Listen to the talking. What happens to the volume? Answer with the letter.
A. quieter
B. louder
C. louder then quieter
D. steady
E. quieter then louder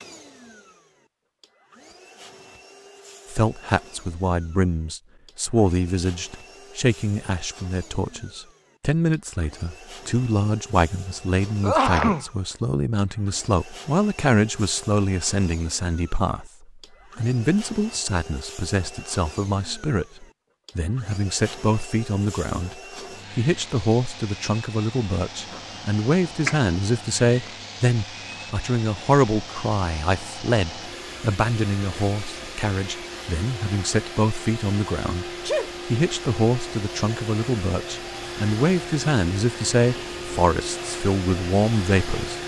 D.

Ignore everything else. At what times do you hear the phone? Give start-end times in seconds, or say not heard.
not heard.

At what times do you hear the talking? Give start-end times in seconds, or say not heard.
3.3-16.5, 17.1-42.4.